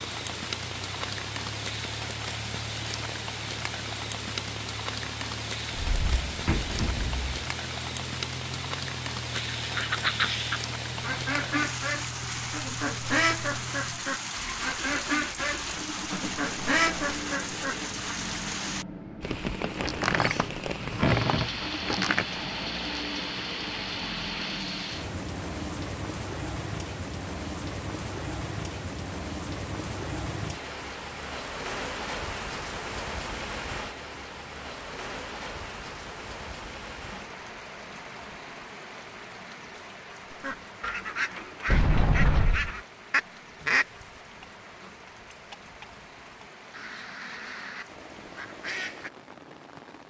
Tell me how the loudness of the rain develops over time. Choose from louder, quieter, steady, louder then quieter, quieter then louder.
quieter.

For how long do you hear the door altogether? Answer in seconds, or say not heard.
5 s.